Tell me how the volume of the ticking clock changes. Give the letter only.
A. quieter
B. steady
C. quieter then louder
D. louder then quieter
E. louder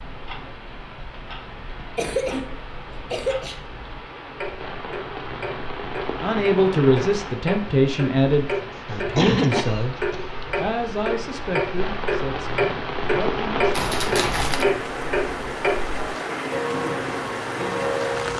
E.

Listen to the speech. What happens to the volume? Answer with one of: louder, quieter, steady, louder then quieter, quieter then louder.
quieter.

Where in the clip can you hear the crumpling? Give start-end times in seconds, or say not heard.
13.7-14.7.